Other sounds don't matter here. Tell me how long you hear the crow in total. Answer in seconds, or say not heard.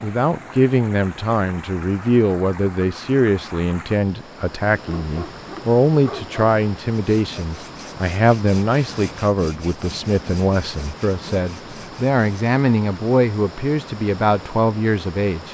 not heard.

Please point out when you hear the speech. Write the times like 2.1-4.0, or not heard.
0.0-15.4.